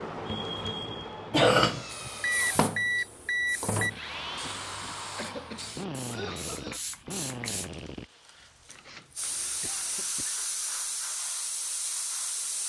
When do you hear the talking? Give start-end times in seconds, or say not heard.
not heard.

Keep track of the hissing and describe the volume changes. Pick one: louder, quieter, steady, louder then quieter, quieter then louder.
louder.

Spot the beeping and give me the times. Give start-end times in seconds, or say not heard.
2.2-3.9.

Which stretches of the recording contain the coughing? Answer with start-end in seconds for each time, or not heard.
0.8-2.1, 5.2-6.8, 9.6-10.9.